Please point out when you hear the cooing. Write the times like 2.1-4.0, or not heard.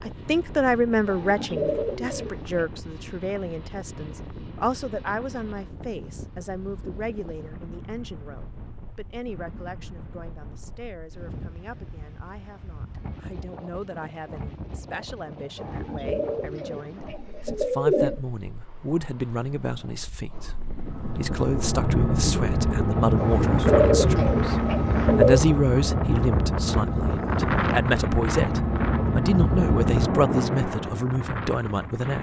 1.1-2.7, 15.6-18.2, 23.1-25.4.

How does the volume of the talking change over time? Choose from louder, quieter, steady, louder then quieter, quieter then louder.
quieter then louder.